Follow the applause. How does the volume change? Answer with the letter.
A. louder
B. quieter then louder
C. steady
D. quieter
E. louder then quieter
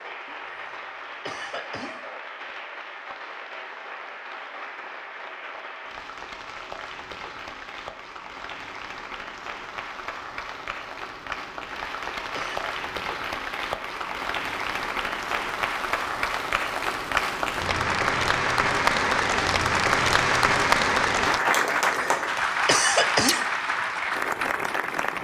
A.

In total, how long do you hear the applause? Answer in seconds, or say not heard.
25 s.